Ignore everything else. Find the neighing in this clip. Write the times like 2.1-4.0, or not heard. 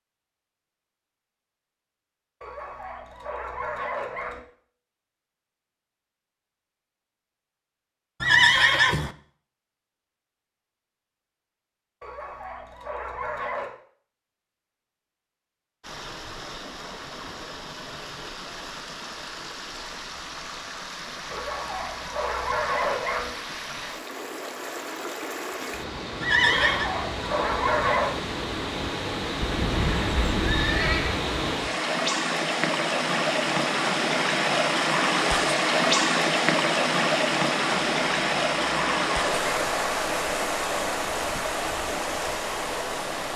8.2-9.2, 26.2-26.9, 29.4-31.2.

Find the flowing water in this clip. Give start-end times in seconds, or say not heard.
15.8-43.3.